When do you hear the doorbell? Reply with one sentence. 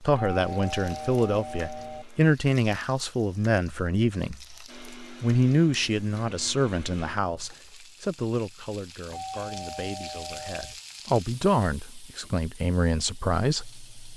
You can hear the doorbell from 0.1 to 2.0 s and from 9.1 to 10.8 s.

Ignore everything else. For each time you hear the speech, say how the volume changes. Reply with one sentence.
The speech can be heard from 0.0 to 13.8 s, getting quieter then louder.